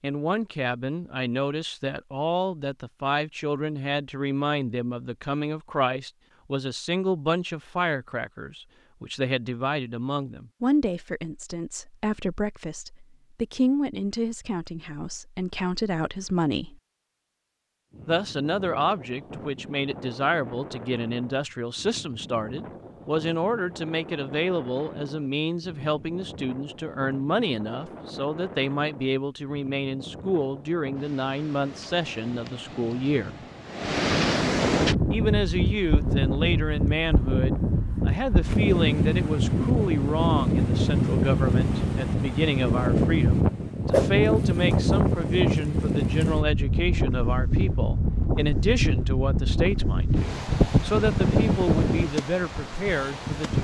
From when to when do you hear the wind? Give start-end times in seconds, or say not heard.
17.9-53.5.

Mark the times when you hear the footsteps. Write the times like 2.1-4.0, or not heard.
not heard.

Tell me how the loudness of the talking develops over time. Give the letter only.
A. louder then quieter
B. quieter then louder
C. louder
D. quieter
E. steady
E.